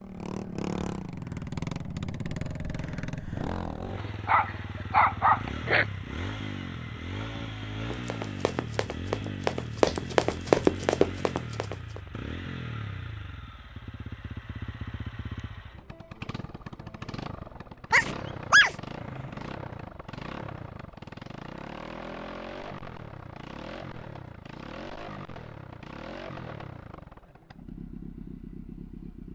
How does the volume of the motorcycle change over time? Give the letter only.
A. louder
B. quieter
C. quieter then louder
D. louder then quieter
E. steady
B.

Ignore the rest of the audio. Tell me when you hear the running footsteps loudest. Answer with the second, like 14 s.
11 s.